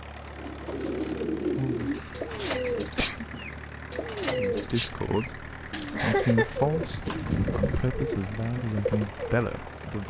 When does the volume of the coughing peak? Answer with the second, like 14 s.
6 s.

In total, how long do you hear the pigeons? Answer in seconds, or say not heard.
9 s.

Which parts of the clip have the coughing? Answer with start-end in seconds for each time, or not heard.
1.9-3.2, 6.0-6.5.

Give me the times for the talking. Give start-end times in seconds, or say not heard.
4.2-10.0.